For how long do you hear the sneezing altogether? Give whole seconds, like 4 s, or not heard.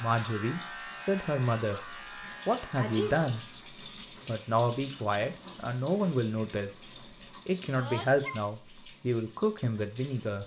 2 s.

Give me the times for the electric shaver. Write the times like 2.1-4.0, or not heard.
0.0-3.6.